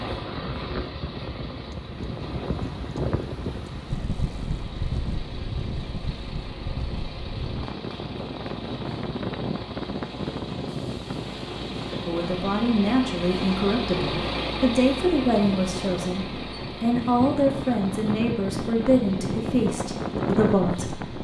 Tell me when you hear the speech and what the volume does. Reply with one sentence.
You can hear the speech from 12.1 to 21.2 s, at a steady volume.